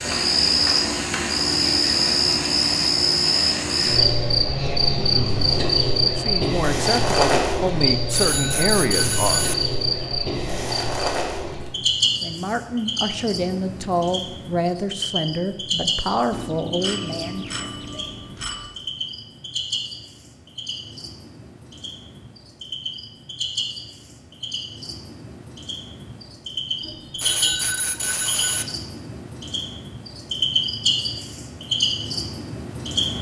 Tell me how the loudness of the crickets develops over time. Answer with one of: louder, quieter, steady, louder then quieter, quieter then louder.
quieter then louder.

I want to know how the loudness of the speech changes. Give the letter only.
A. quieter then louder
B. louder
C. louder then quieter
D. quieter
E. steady
E.